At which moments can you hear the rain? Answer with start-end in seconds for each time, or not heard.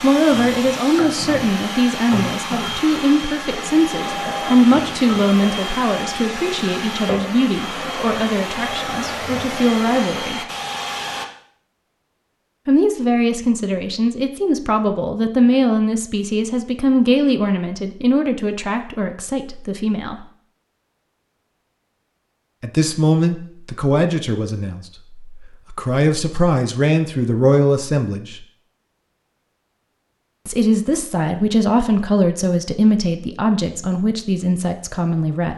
not heard.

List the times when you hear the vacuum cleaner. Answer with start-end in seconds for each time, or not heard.
0.0-11.2.